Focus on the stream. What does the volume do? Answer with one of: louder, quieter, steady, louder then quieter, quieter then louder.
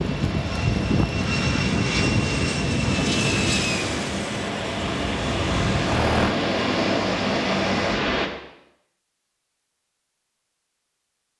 louder.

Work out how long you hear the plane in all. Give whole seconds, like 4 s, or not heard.
6 s.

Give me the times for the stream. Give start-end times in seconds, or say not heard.
0.0-8.3.